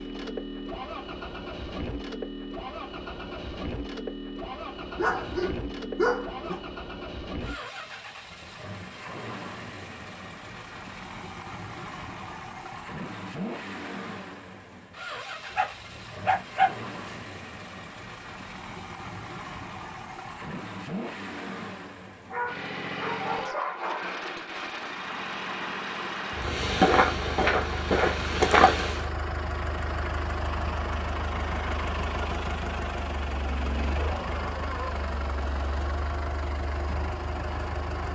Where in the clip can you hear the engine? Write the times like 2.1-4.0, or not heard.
0.0-38.1.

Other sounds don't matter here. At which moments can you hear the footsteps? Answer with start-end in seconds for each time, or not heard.
26.4-29.1.